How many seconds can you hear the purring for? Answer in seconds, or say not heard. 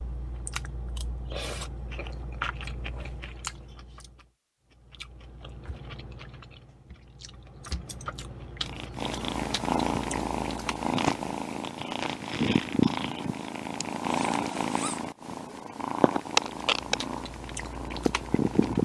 10 s.